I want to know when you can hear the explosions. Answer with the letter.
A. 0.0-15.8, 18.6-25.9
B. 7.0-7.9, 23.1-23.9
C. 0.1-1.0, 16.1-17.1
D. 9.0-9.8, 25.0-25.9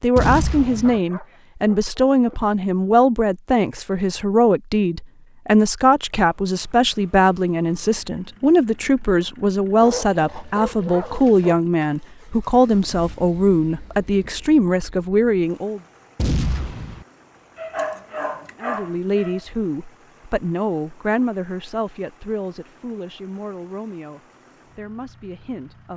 C.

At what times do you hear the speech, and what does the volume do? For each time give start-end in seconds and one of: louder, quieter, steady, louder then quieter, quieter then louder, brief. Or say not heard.
0.0-15.8 steady
18.6-25.9 quieter.